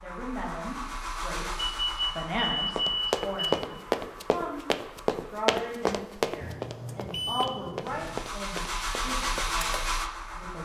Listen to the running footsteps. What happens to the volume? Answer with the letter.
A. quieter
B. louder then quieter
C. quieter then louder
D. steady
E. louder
A.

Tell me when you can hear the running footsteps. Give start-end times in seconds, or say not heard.
2.8-9.5.